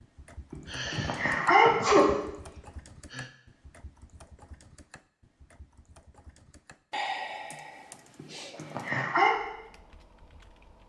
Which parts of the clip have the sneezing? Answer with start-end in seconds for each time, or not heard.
0.5-2.1, 8.2-9.3.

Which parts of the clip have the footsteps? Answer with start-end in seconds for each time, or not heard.
not heard.